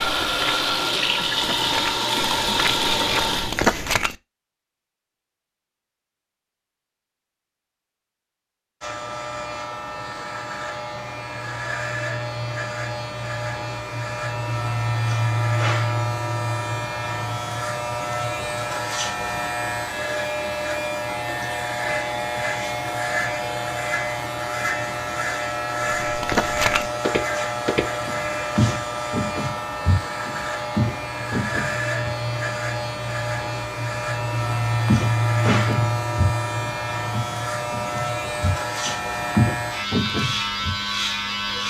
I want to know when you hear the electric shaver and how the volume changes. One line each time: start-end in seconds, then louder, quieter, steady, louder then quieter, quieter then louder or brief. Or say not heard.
8.8-41.6 steady.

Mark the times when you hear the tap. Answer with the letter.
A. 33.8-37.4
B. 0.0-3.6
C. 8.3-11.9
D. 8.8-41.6
B.